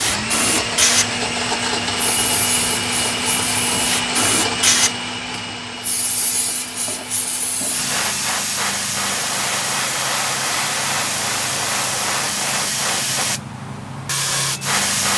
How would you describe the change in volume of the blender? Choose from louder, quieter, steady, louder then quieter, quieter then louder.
quieter.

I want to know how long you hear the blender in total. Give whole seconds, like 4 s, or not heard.
8 s.